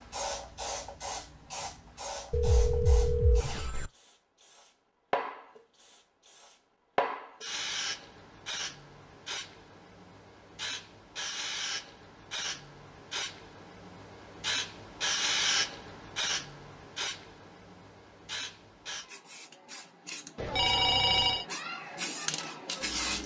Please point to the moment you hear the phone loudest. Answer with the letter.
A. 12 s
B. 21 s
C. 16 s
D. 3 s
B.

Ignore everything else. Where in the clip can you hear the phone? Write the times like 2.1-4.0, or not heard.
2.3-3.9, 20.4-21.4.